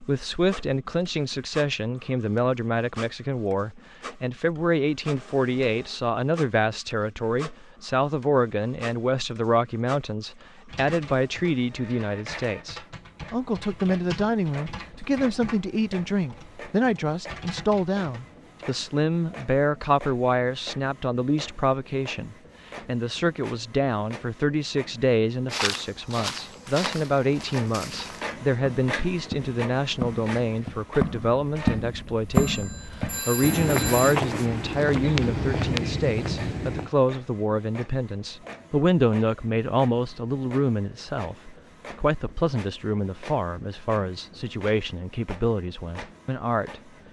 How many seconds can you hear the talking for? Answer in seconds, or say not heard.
47 s.